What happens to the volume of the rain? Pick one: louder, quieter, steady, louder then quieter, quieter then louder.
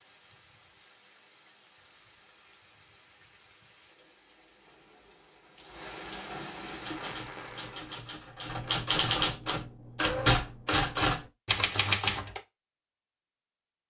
louder.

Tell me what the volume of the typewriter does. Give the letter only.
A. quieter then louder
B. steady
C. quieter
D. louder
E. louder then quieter
D.